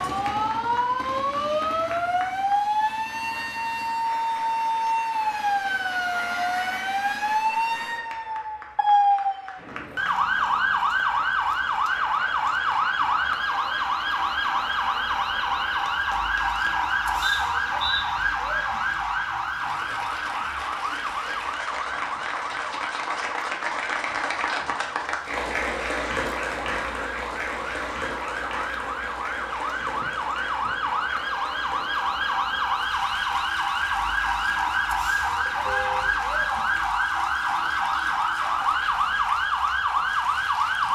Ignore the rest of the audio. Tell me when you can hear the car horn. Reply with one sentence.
You can hear the car horn from 35.5 to 36.1 s.